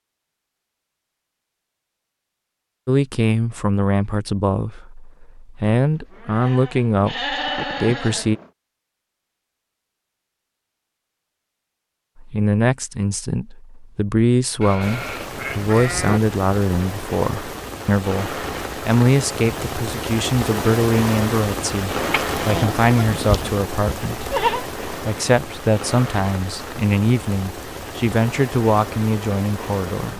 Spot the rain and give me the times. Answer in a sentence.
You can hear the rain from 14.8 to 30.1 s.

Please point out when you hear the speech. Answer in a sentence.
You can hear the speech from 2.9 to 8.4 s and from 12.2 to 30.1 s.